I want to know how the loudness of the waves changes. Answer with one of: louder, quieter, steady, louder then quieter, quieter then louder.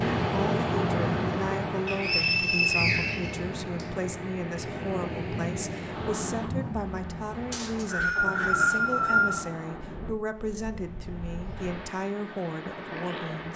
quieter.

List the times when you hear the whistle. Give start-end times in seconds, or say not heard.
1.9-3.9, 7.5-9.4.